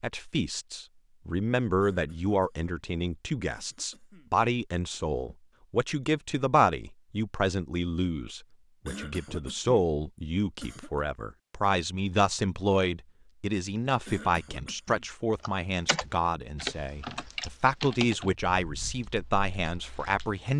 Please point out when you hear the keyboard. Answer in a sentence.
The keyboard can be heard from 15.4 to 20.4 s.